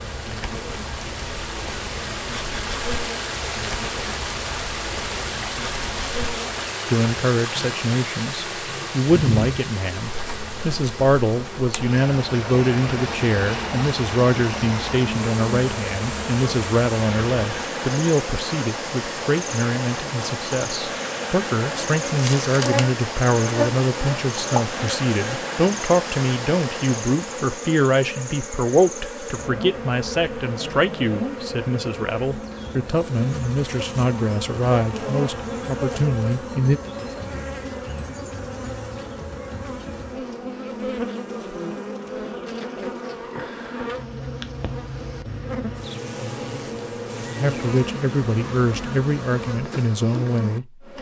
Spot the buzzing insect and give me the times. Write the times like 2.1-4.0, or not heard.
0.0-50.9.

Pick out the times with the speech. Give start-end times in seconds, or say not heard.
6.8-36.8, 47.4-50.9.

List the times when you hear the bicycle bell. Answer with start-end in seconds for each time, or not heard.
not heard.